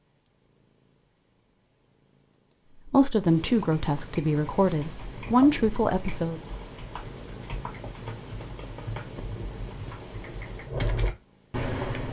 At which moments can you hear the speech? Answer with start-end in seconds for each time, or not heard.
2.9-6.4.